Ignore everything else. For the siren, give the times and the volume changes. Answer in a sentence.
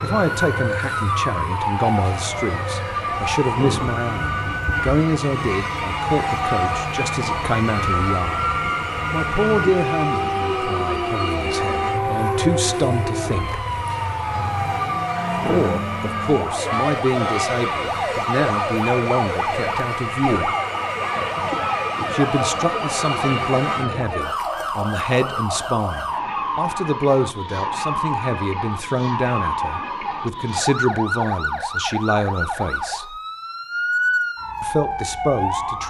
You can hear the siren from 0.0 to 35.8 s, at a steady volume.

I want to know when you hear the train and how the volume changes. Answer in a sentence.
The train can be heard from 0.0 to 24.1 s, at a steady volume.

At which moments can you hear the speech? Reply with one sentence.
The speech can be heard from 0.0 to 8.5 s, from 9.1 to 13.6 s, from 15.4 to 20.6 s, from 22.1 to 33.1 s and from 34.6 to 35.8 s.